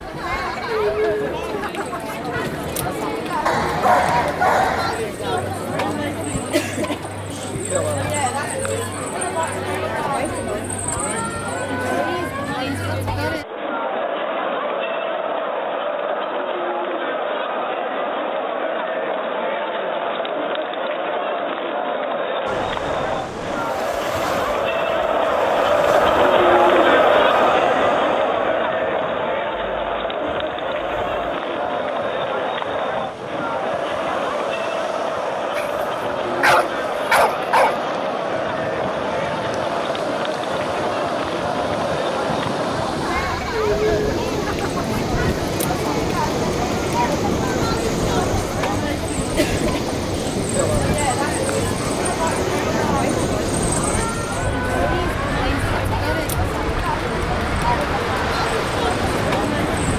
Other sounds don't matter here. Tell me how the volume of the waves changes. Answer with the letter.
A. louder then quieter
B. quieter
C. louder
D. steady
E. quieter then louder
C.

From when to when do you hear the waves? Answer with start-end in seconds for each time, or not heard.
22.4-59.9.